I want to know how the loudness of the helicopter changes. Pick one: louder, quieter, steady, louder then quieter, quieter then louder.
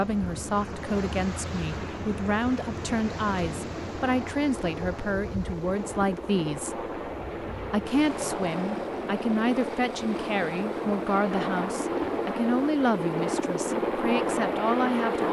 louder.